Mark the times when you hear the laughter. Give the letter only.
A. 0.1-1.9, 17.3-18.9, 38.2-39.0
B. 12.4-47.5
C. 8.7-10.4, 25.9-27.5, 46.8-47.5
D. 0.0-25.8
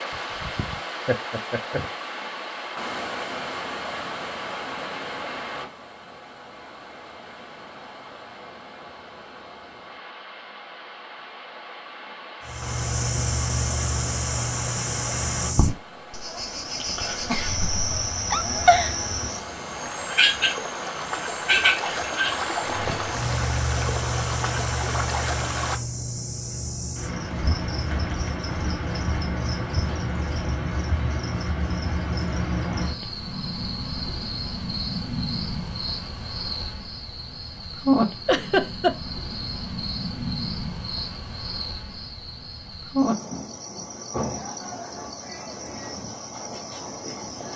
A.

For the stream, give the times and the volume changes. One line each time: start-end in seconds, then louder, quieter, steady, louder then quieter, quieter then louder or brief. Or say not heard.
0.0-25.8 quieter then louder.